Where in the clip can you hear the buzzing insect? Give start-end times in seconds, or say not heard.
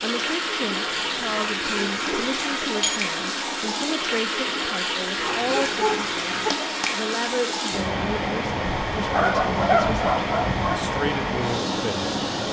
not heard.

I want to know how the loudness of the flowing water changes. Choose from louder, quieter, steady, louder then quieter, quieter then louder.
steady.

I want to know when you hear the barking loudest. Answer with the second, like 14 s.
10 s.